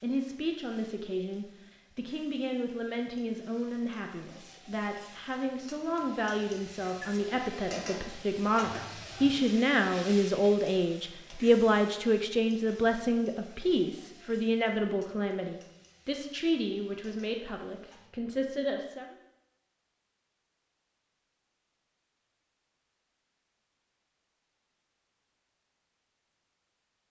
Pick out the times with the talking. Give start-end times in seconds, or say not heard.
0.0-19.1.